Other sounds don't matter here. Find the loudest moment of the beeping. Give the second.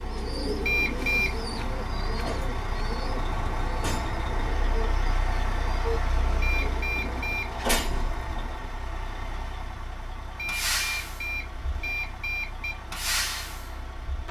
1 s.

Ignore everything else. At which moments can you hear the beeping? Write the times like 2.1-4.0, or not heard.
0.6-1.4, 6.4-7.6, 10.3-12.8.